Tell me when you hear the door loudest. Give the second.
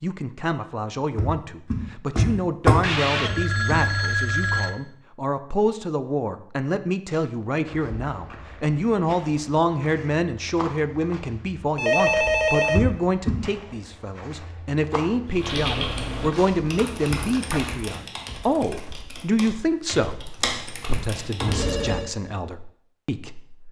3 s.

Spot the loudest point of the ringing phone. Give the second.
12 s.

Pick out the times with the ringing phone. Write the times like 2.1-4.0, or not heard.
2.8-4.8, 11.8-12.8, 21.4-22.1.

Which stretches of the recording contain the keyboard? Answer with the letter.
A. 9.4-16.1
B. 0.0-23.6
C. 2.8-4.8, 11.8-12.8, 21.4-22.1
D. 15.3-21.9
D.